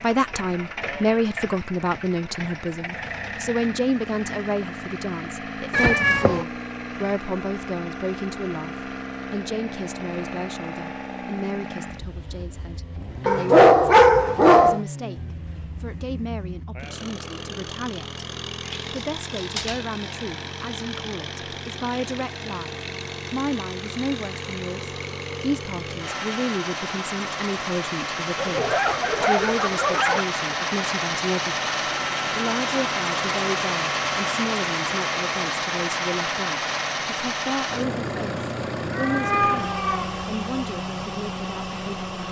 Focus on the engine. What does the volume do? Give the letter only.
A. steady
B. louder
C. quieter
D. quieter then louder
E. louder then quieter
B.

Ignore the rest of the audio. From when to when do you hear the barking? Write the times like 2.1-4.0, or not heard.
13.2-14.8, 28.4-30.2.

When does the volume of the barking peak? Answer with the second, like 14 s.
14 s.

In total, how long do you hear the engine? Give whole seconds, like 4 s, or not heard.
42 s.